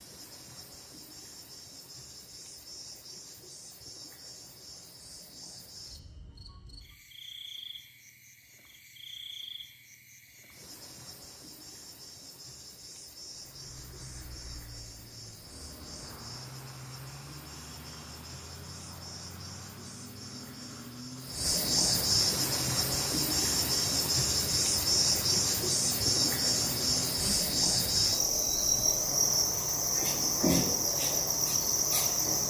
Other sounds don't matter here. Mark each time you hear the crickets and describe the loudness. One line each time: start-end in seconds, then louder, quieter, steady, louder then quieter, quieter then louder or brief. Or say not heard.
0.0-32.4 louder.